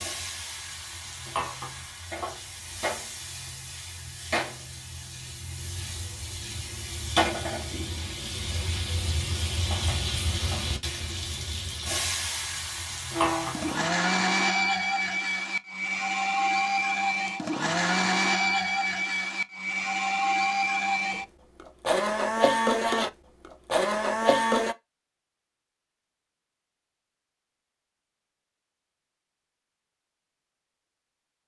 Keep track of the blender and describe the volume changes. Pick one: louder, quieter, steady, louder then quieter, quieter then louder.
steady.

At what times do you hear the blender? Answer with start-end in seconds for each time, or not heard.
13.2-24.8.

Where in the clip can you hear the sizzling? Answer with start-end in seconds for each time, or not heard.
0.0-13.9.